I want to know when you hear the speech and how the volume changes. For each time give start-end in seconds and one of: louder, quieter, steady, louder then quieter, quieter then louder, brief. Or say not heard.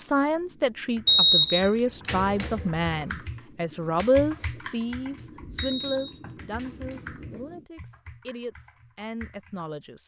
0.0-10.0 quieter.